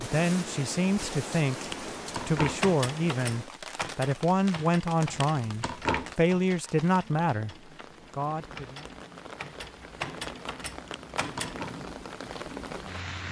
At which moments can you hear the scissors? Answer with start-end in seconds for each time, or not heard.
1.6-2.6, 5.1-6.2, 10.8-11.8.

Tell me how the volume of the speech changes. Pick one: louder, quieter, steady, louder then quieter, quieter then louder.
steady.